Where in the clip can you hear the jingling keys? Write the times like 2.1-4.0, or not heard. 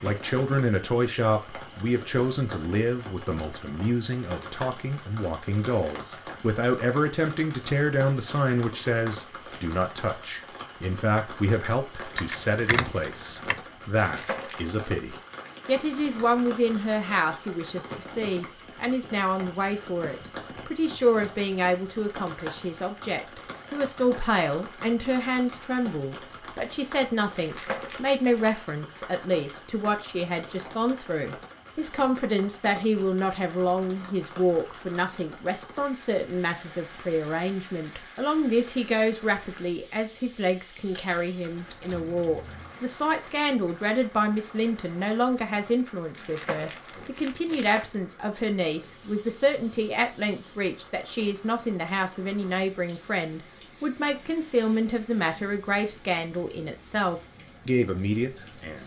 12.2-13.6, 40.8-42.8.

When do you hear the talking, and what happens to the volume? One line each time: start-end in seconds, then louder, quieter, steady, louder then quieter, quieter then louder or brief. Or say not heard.
0.0-58.8 steady.